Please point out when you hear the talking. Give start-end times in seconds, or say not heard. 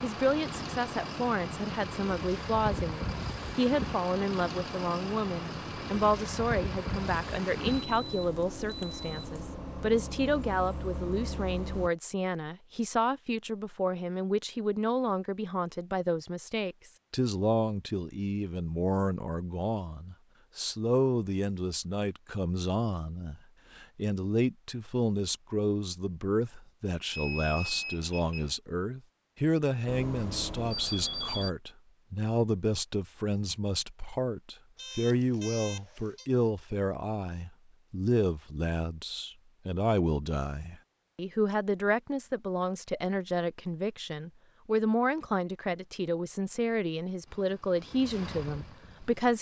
0.0-49.3.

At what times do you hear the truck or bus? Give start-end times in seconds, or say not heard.
0.0-11.9, 29.9-31.5, 47.2-49.3.